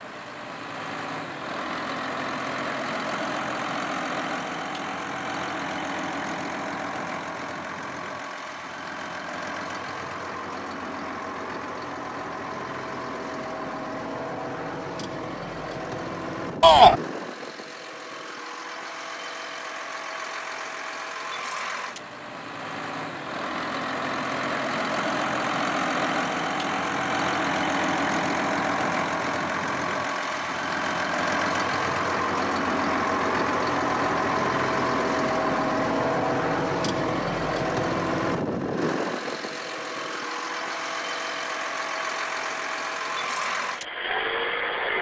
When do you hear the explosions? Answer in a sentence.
You can't hear the explosions here.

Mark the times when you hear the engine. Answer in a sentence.
The engine can be heard from 0.0 to 44.9 s.